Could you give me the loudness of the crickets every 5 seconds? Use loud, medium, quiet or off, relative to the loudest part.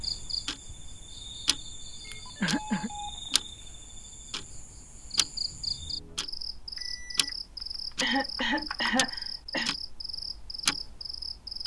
medium, loud, loud.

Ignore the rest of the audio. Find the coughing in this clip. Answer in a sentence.
The coughing can be heard from 2.4 to 3.4 s and from 8.0 to 9.7 s.